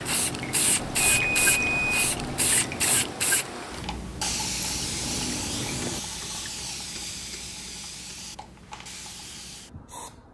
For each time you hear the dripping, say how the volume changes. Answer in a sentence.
The dripping can be heard from 0.0 to 6.5 s, getting quieter then louder.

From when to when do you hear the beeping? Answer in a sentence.
The beeping can be heard from 0.8 to 2.5 s.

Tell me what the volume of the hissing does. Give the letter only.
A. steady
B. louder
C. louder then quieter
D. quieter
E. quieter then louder
D.